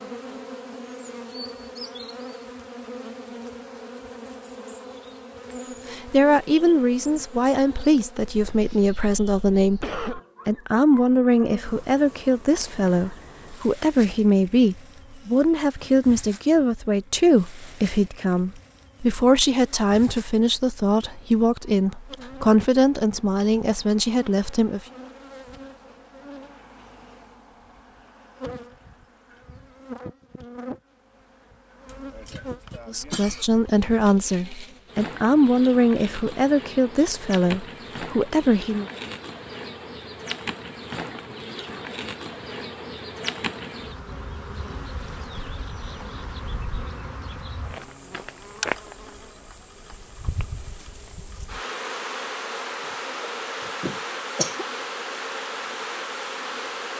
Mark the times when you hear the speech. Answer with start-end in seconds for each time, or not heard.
5.9-24.8, 32.9-38.9.